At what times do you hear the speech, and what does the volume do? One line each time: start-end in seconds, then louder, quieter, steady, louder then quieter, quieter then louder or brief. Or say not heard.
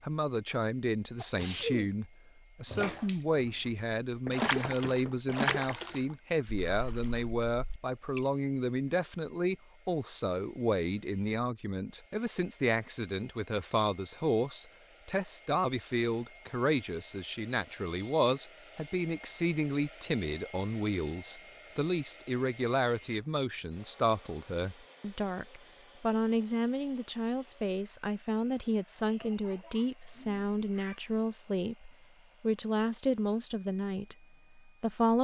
0.0-35.1 steady.